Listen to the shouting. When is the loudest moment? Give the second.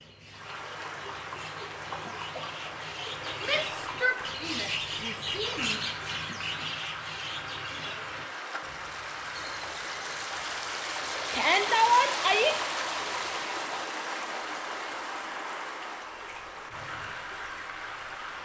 12 s.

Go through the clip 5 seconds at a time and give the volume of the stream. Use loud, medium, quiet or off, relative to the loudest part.
medium, medium, loud, medium.